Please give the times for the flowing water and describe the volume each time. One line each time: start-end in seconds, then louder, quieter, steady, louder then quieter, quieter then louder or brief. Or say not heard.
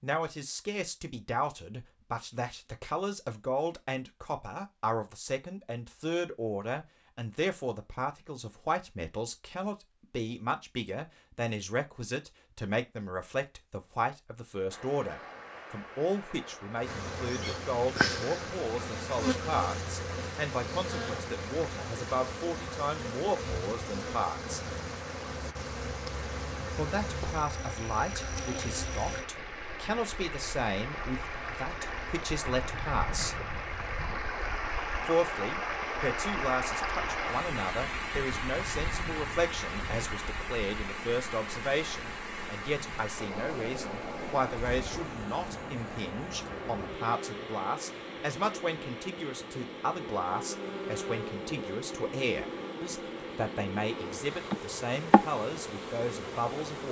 14.7-56.8 louder then quieter.